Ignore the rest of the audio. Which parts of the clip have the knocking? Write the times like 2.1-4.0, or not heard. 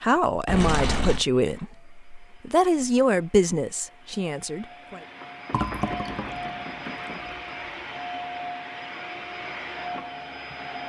5.2-7.2.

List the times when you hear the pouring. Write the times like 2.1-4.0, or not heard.
0.5-1.2, 5.5-7.4.